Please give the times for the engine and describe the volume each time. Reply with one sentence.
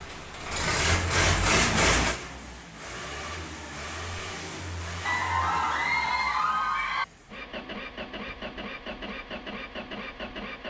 You can hear the engine from 0.0 to 10.6 s, getting quieter.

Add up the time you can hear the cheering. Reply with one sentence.
The cheering can be heard for 2 seconds in total.